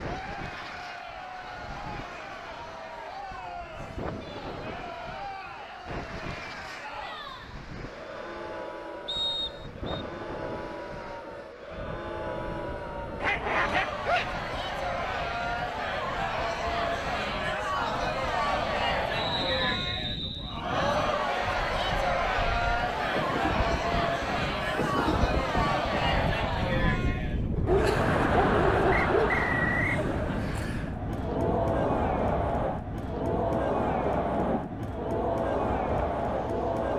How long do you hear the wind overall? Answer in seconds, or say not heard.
37 s.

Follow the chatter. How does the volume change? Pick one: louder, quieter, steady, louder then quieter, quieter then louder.
louder.